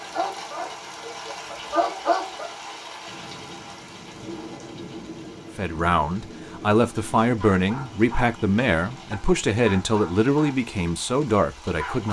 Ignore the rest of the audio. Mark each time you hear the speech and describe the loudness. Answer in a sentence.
You can hear the speech from 5.5 to 12.0 s, at a steady volume.